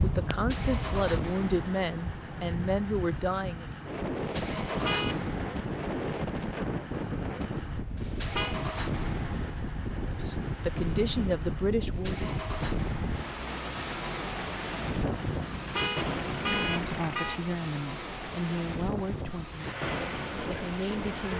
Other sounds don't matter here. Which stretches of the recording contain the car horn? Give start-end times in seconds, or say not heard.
4.7-5.2, 8.0-8.6, 15.6-17.4.